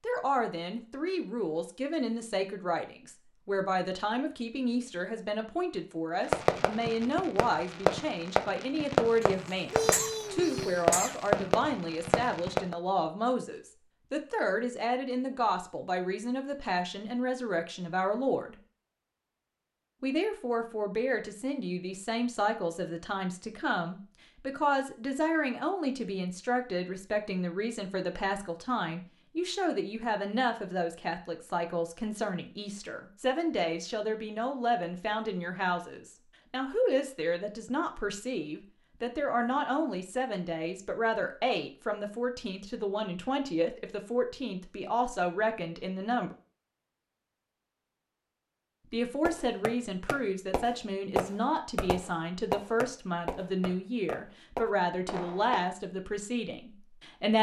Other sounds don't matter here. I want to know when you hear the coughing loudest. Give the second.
10 s.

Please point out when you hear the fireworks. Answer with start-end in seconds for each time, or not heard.
6.2-12.8, 49.2-55.7.